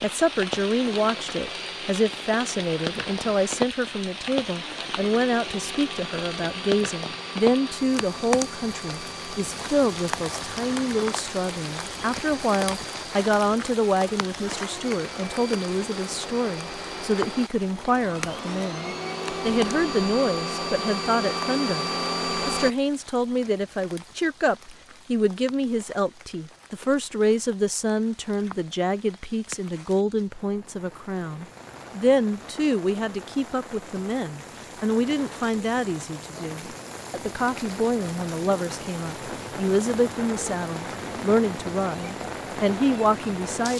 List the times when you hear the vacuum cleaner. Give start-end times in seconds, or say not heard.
0.1-22.8.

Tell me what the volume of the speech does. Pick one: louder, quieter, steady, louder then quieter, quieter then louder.
steady.